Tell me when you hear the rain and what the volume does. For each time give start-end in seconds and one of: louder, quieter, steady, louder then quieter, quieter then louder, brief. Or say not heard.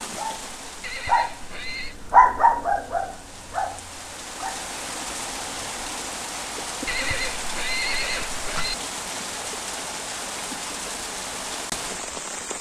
0.0-12.5 louder.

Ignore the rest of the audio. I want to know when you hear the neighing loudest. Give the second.
8 s.